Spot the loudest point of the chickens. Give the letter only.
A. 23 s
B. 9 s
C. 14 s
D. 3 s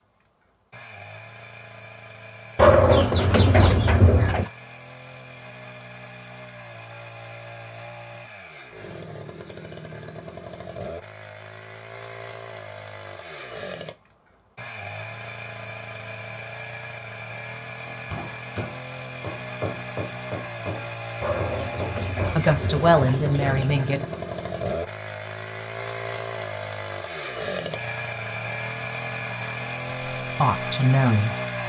D.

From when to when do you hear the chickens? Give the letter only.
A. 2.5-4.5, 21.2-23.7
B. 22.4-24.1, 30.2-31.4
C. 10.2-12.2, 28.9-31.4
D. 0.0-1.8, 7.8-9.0
A.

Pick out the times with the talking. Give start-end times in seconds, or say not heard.
22.4-24.1, 30.2-31.4.